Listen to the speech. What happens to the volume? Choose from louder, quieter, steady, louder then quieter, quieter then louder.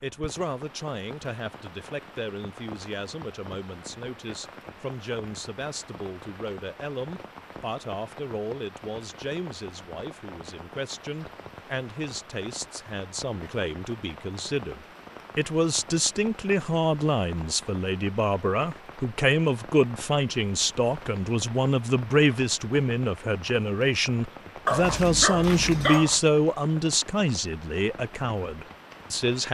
louder.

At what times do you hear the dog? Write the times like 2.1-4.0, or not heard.
24.6-26.2.